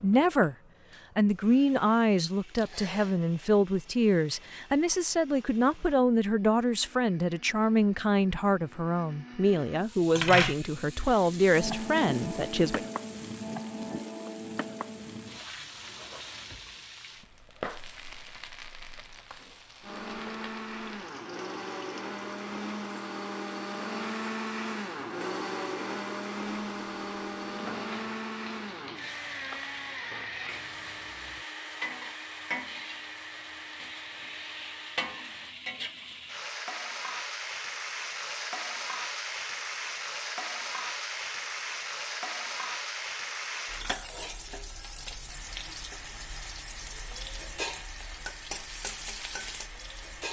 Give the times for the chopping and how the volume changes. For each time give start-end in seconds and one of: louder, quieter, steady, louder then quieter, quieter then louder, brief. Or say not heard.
not heard.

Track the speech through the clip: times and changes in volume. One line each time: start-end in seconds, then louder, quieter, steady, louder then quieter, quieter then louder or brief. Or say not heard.
0.0-0.6 brief
1.1-12.8 steady.